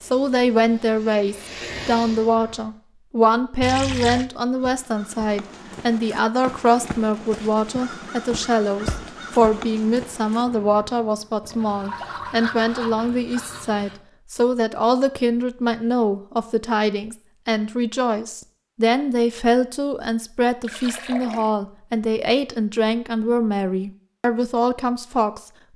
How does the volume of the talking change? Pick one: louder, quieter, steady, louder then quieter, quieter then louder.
steady.